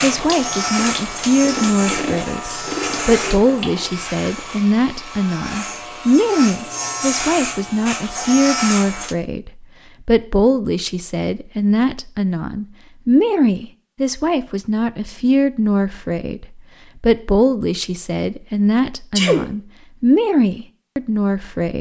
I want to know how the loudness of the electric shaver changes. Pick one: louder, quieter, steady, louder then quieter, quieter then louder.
quieter then louder.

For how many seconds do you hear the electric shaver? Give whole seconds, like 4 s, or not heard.
9 s.